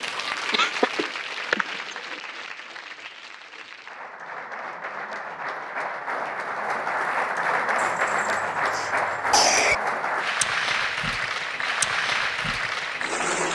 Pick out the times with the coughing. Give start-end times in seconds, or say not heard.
0.5-1.8, 7.8-9.8.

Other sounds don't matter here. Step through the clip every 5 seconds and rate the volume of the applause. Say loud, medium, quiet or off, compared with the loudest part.
medium, loud, loud.